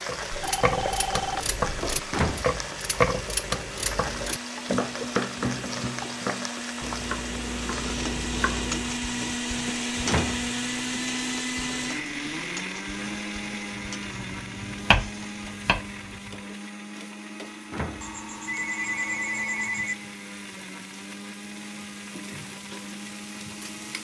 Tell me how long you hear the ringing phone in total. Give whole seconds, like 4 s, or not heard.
4 s.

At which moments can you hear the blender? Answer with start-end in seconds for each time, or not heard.
0.0-23.9.